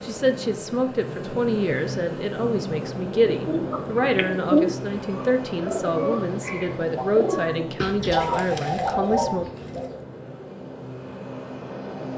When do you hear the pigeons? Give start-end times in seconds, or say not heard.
3.4-10.0.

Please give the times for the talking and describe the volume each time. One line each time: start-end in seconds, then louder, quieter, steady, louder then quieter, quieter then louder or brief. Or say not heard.
0.0-9.4 steady.